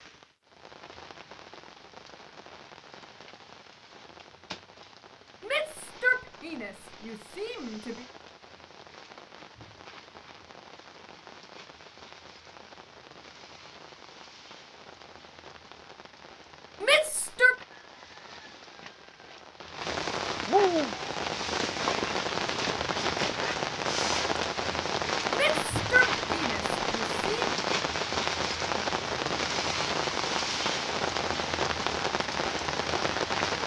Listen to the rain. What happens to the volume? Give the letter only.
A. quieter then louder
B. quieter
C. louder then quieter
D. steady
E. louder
E.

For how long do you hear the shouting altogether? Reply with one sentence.
You can hear the shouting for 6 seconds altogether.